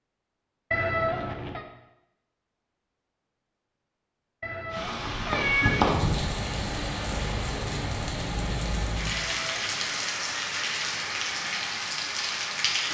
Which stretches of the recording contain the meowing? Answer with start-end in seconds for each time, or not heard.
0.7-1.6, 4.4-5.8, 9.1-10.1.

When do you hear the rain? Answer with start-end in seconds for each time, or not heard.
4.7-12.8.